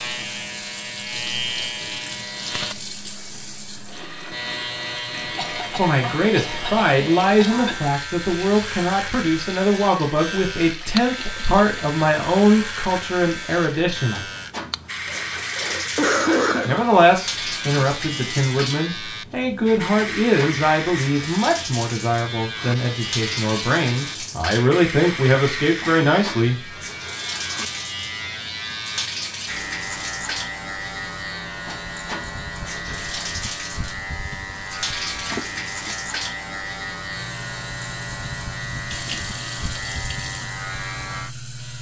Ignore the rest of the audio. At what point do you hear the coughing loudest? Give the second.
16 s.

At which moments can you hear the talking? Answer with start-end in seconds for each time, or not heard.
5.7-14.2, 16.6-26.6.